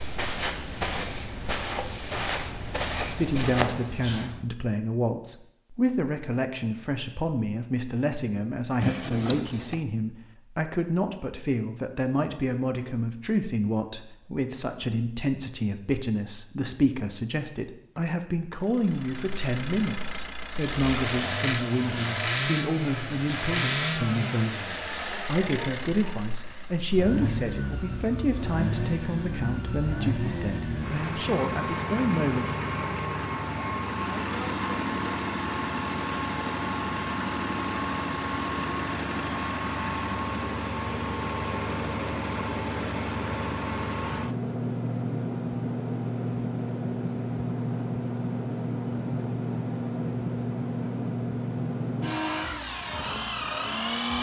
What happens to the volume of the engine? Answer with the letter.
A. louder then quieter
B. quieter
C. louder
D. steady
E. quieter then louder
D.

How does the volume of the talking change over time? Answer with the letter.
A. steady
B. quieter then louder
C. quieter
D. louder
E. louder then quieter
A.